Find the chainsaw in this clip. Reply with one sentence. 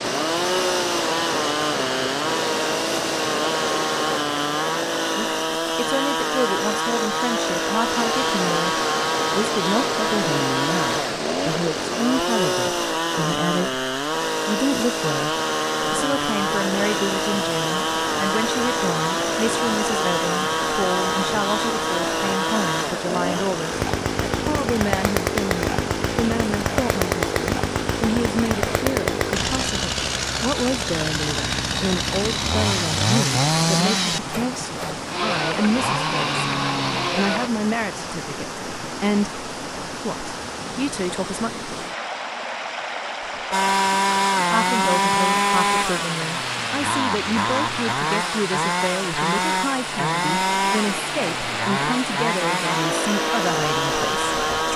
You can hear the chainsaw from 0.0 to 37.5 s and from 43.5 to 54.7 s.